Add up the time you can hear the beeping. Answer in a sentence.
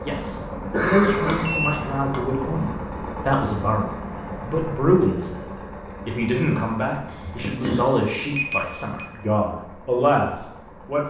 The beeping can be heard for 2 seconds in total.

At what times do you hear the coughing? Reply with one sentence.
You can hear the coughing from 0.7 to 1.5 s and from 7.0 to 8.2 s.